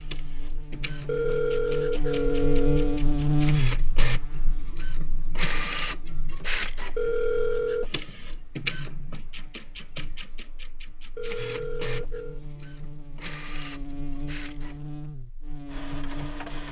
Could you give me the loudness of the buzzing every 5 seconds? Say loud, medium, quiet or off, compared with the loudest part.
loud, quiet, quiet, medium.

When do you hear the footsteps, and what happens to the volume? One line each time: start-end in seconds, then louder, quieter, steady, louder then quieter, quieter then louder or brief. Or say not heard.
not heard.